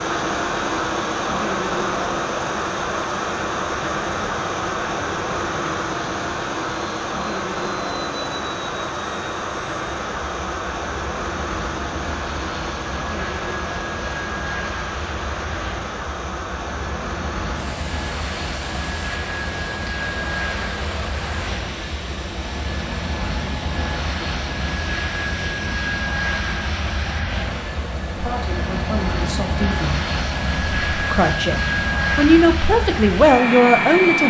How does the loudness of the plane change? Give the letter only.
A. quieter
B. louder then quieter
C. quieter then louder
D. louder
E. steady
D.